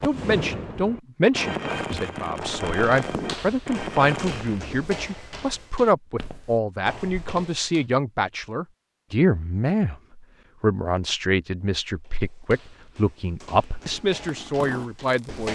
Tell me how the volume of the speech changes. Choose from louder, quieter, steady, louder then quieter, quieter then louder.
steady.